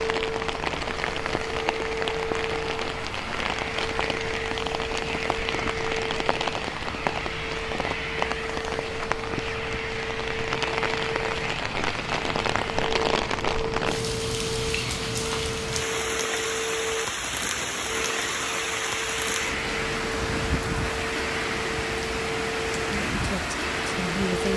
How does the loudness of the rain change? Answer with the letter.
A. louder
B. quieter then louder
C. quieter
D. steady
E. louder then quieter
D.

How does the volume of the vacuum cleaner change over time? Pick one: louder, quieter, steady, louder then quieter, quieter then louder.
steady.